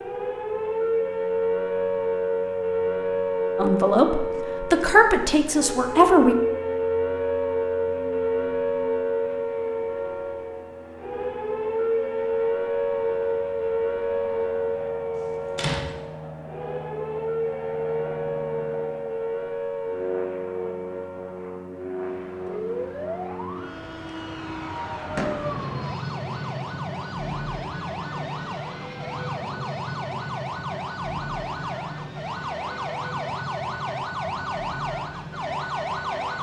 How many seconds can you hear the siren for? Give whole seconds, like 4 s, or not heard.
36 s.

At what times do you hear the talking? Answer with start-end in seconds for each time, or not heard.
3.5-6.3.